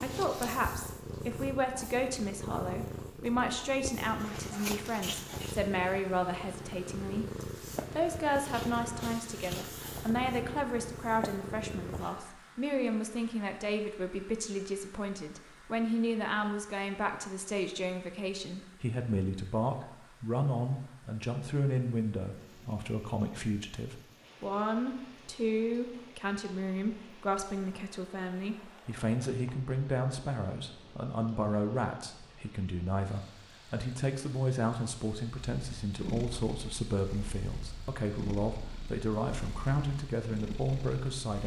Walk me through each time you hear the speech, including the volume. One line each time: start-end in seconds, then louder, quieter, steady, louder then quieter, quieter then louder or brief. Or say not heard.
0.0-41.4 steady.